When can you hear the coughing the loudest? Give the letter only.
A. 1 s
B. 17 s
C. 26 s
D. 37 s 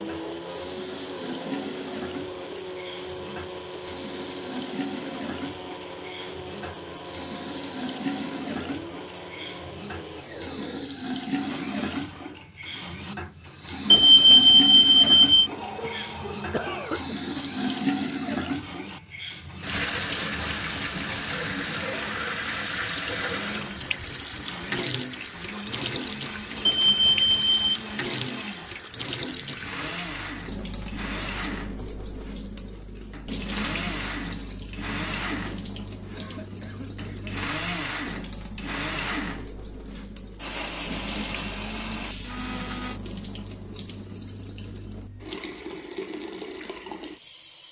B.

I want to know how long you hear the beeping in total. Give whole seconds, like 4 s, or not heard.
3 s.